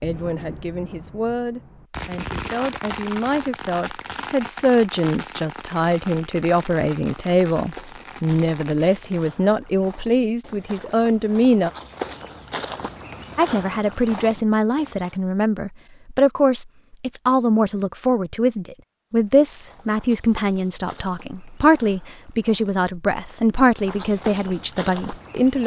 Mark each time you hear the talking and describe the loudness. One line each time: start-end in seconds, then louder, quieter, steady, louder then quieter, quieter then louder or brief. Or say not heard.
0.0-11.7 louder
13.3-25.6 steady.